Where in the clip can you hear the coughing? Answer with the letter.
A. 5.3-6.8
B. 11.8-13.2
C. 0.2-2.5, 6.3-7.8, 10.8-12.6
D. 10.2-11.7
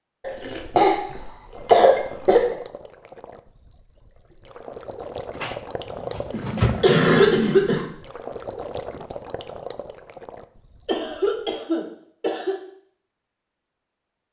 C.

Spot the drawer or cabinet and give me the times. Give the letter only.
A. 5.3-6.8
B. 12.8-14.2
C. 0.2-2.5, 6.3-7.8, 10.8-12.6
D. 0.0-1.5
A.